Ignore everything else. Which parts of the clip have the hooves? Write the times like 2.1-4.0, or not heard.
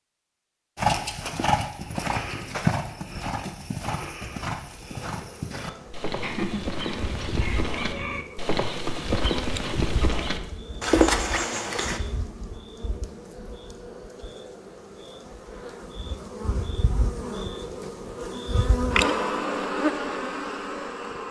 0.8-12.0.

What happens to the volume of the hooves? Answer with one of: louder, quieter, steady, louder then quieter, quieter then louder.
quieter then louder.